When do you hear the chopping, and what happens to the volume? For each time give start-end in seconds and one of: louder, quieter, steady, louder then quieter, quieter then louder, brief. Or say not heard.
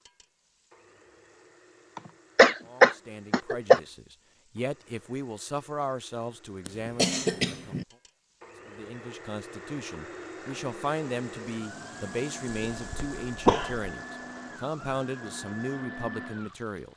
not heard.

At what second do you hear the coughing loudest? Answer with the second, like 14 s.
3 s.